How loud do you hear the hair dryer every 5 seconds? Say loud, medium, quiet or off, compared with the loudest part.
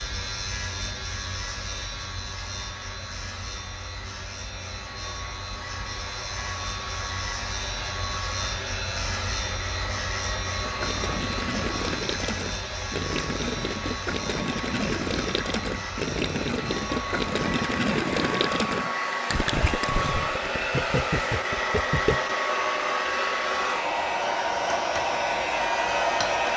quiet, medium, medium, medium, loud, loud.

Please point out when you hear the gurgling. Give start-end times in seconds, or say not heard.
10.6-22.2.